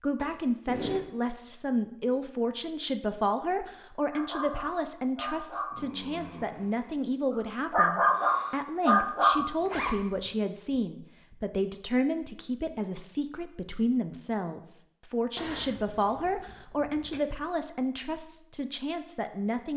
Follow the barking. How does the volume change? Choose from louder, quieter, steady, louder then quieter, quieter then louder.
quieter then louder.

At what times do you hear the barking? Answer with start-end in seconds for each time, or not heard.
4.1-9.4.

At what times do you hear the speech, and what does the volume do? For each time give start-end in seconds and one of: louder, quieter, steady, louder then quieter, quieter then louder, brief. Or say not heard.
0.0-19.7 steady.